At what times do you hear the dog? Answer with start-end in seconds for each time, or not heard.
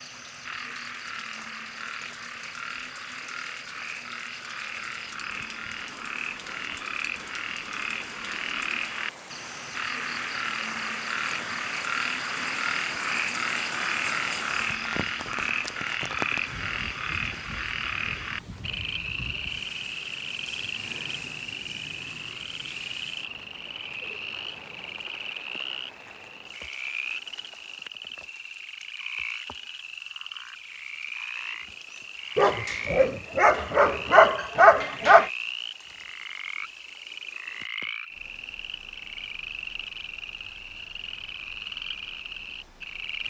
32.4-35.3.